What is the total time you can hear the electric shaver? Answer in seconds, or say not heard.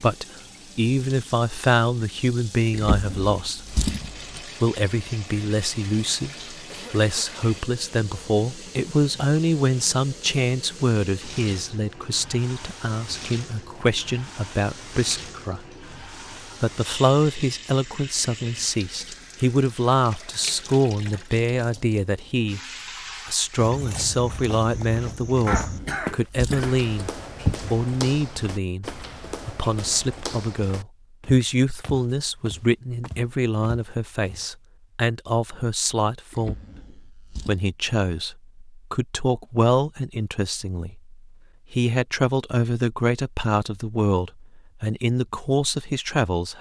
not heard.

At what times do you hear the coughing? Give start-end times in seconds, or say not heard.
6.7-7.4, 25.4-26.9.